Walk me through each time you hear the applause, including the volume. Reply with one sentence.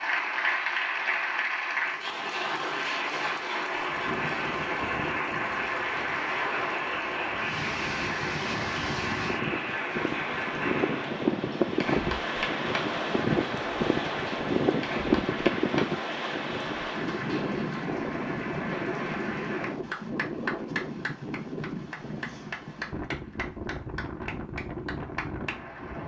The applause can be heard from 0.0 to 26.0 s, getting quieter.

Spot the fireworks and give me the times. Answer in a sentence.
You can't hear the fireworks here.